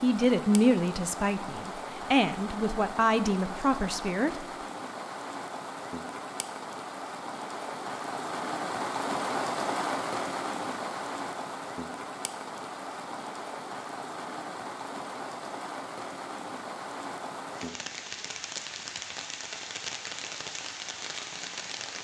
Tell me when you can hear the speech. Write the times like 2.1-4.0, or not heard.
0.0-4.5.